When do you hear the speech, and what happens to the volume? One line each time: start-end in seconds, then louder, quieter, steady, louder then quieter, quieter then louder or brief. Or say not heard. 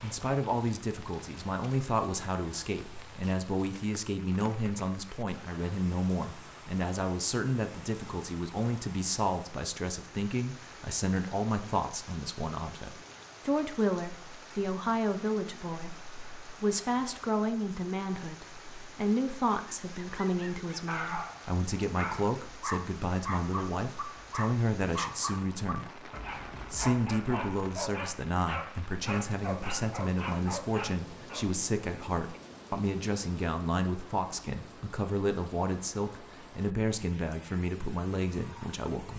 0.0-26.1 steady
26.7-39.1 steady.